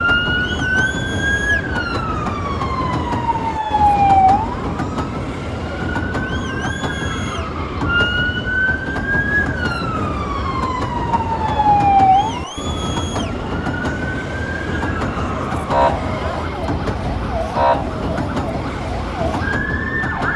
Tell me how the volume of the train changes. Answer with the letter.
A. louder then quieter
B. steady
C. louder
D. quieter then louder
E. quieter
B.